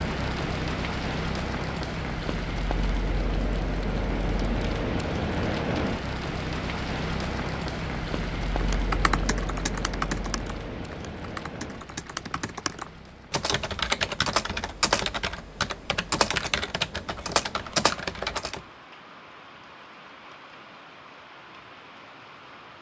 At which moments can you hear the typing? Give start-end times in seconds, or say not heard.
8.6-18.6.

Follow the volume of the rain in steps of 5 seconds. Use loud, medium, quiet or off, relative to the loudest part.
loud, loud, medium, quiet, quiet.